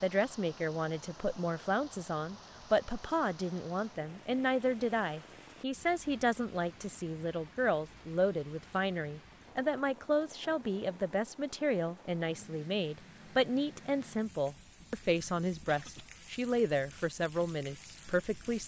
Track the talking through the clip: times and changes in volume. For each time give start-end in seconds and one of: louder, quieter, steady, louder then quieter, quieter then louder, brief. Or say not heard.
0.0-18.6 steady.